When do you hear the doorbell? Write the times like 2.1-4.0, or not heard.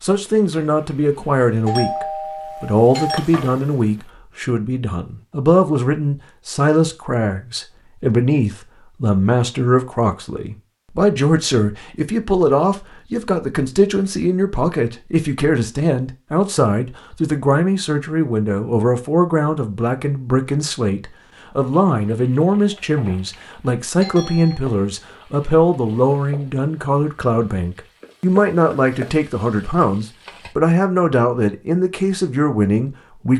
1.6-3.2, 24.0-24.6.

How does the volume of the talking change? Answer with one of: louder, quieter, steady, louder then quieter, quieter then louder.
steady.